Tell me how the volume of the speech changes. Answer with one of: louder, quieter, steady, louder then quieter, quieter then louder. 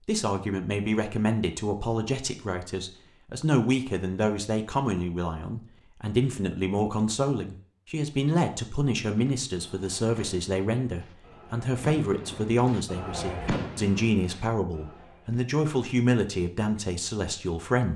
steady.